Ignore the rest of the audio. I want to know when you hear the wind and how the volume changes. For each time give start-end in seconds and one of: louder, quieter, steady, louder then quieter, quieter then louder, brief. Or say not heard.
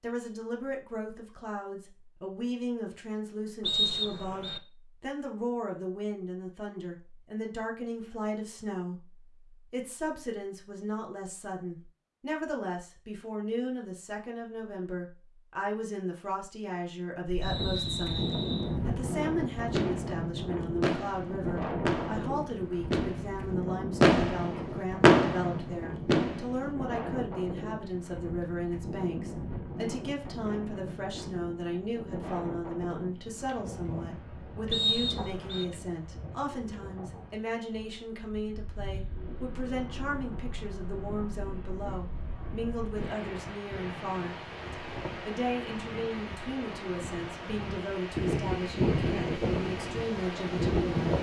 17.2-51.1 quieter then louder.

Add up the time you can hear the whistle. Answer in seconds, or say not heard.
3 s.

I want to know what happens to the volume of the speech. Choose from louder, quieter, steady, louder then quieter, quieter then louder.
steady.